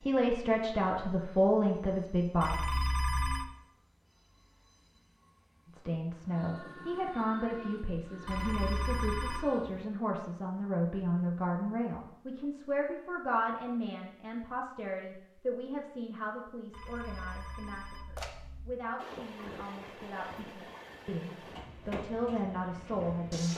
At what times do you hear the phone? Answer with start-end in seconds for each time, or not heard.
2.4-3.5, 8.2-9.4, 16.7-18.8.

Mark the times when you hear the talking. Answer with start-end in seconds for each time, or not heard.
0.1-2.5, 5.7-23.5.